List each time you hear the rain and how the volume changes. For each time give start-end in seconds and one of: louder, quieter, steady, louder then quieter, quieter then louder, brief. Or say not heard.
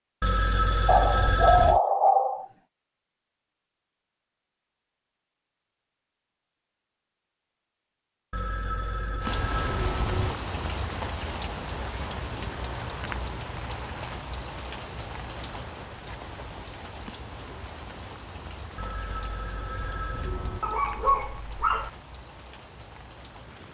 9.2-23.6 quieter.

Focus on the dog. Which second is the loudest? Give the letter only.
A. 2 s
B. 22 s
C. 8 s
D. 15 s
A.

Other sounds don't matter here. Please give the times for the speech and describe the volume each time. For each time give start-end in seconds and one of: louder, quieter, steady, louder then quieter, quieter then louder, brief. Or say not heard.
not heard.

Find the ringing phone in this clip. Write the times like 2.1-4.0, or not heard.
0.2-1.8, 8.3-10.3, 18.8-20.6.